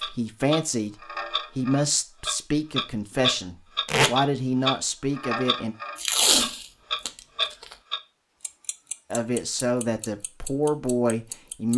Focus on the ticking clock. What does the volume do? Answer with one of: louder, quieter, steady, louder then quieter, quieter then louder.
louder then quieter.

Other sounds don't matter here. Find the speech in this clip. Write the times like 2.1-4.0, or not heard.
0.0-0.9, 1.6-5.8, 9.1-11.7.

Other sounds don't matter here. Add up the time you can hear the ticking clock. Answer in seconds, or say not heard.
12 s.